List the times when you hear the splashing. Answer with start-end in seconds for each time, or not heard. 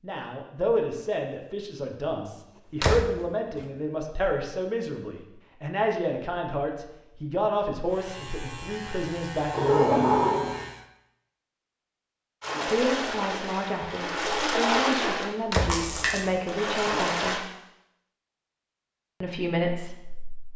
12.4-17.4.